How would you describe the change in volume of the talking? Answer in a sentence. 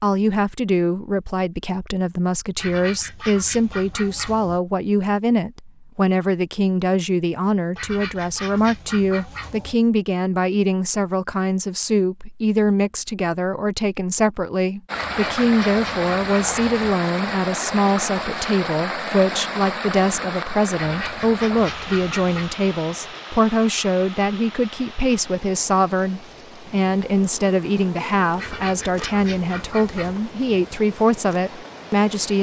The volume of the talking stays about the same.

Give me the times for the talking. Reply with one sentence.
The talking can be heard from 0.0 to 32.3 s.